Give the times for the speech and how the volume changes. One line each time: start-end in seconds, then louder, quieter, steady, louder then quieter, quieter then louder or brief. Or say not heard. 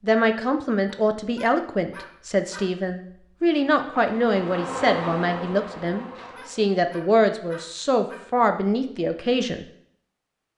0.0-9.7 steady.